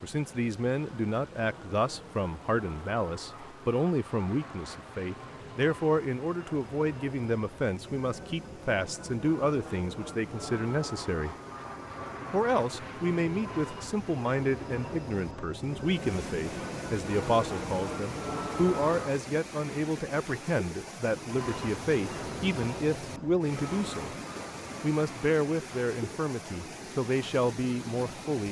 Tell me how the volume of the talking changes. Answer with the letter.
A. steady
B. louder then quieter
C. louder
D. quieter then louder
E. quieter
A.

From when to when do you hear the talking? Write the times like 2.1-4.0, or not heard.
0.0-11.3, 12.3-24.1, 24.8-28.4.